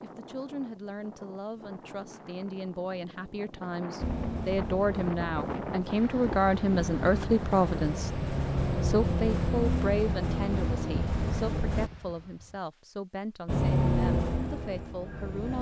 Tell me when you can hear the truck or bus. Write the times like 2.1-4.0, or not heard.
4.0-11.9, 13.4-15.5.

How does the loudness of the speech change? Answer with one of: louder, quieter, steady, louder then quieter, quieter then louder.
louder then quieter.